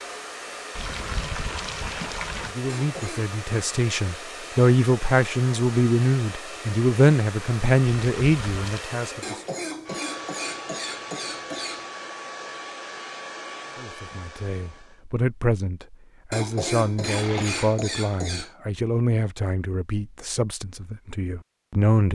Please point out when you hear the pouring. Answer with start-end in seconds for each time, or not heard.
0.8-2.5, 7.8-8.8, 17.0-17.8.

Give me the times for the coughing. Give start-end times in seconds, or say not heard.
2.6-3.3, 9.2-11.9, 16.3-18.5.